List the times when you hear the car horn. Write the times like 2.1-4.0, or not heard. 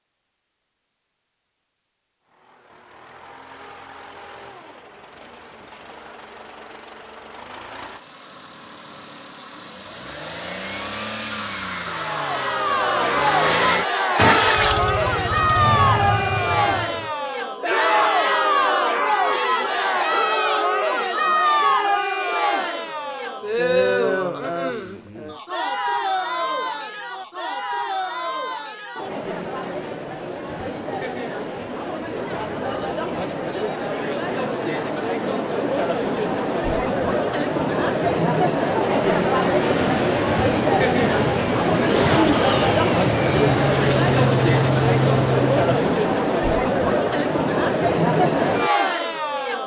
not heard.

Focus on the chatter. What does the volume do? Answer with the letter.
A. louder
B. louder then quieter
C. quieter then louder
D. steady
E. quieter
C.